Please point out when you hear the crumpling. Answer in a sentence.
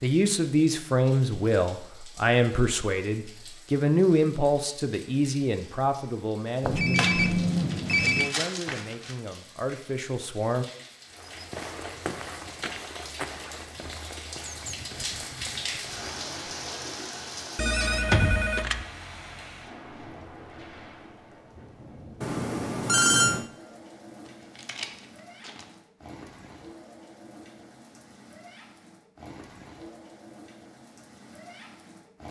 You can hear the crumpling from 7.0 to 9.2 s and from 24.2 to 25.8 s.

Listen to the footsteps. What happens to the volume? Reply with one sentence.
The loudness of the footsteps goes down.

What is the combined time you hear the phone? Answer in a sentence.
The phone can be heard for 4 seconds in total.